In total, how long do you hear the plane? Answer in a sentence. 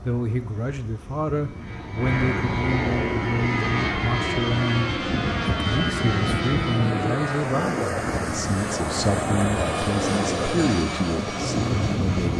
You can hear the plane for 12 seconds altogether.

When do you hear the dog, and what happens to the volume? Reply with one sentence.
You can't hear the dog here.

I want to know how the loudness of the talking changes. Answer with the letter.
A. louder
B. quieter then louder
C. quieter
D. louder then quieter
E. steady
E.